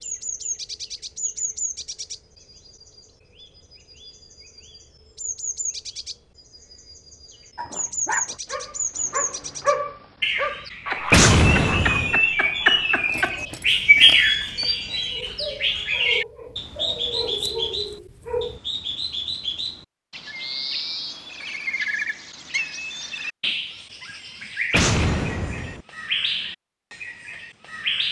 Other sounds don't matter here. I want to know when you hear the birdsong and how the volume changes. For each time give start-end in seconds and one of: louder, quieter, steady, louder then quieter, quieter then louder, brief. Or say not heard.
0.0-28.0 louder then quieter.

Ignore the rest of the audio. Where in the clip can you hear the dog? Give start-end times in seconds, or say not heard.
7.5-18.6.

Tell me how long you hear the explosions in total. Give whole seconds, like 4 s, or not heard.
2 s.